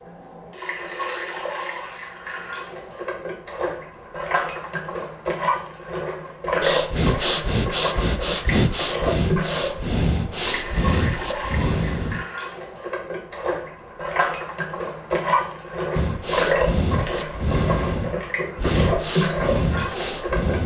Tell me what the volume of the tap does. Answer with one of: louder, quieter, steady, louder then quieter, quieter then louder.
louder.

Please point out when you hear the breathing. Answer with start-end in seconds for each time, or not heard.
6.6-12.2, 15.9-20.6.